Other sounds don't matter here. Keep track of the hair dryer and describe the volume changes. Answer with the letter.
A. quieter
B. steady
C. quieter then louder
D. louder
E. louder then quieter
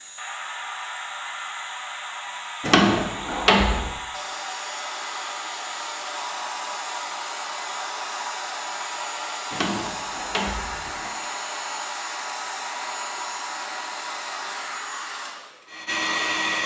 B.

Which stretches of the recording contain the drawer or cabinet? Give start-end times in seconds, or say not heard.
2.6-3.9, 9.5-11.1.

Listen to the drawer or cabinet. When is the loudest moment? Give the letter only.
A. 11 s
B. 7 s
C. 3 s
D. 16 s
C.